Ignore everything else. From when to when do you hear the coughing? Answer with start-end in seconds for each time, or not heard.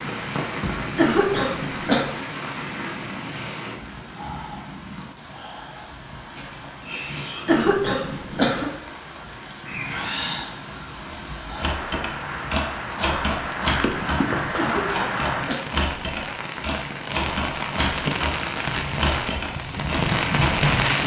0.9-2.0, 7.5-8.7, 14.6-15.8.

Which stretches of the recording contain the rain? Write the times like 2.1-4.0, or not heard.
0.0-21.0.